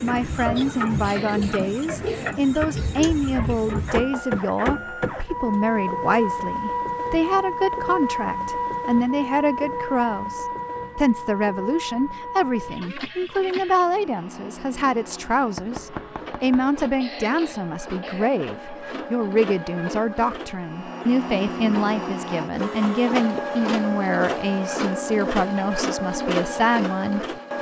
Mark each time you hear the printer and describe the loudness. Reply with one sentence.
You can hear the printer from 0.0 to 27.5 s, getting quieter then louder.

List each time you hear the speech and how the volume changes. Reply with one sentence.
The speech can be heard from 0.0 to 27.5 s, at a steady volume.